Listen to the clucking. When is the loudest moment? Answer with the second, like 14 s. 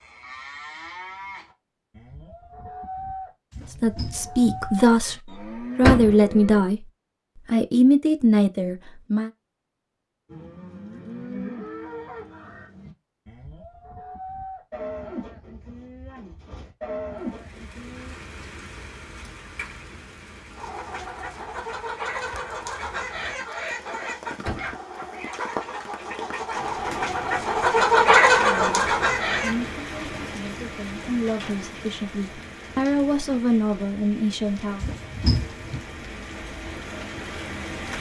28 s.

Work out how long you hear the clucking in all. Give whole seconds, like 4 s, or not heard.
9 s.